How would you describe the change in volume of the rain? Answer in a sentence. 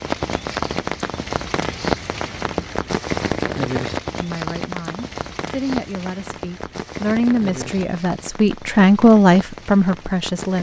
The loudness of the rain goes down.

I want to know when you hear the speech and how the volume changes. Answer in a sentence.
You can hear the speech from 4.2 to 10.5 s, getting louder.